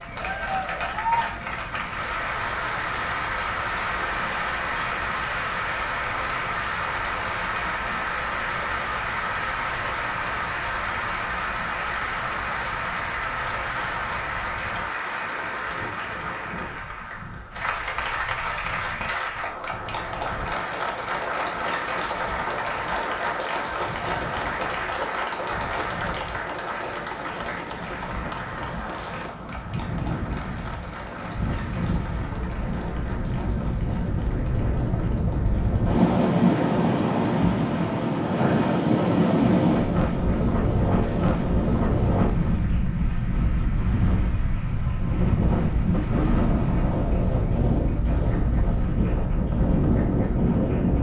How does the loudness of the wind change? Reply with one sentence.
The loudness of the wind goes up.